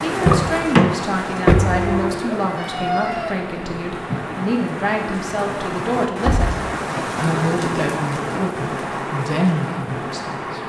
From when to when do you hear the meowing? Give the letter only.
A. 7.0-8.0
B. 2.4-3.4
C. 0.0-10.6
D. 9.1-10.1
B.